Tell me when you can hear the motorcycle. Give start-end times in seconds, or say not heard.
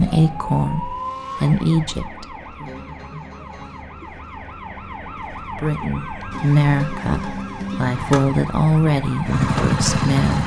7.8-10.4.